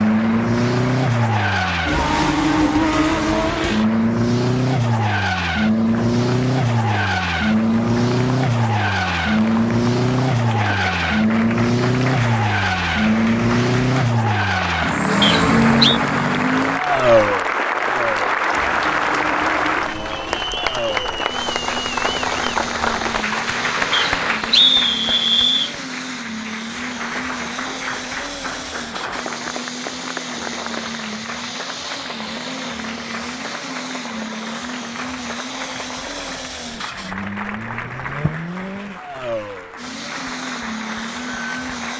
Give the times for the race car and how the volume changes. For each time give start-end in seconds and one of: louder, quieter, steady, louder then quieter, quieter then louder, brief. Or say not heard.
0.0-41.9 quieter.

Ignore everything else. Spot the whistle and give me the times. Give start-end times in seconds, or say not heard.
15.2-16.0, 23.9-25.8.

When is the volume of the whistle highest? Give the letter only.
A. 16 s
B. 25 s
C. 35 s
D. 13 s
B.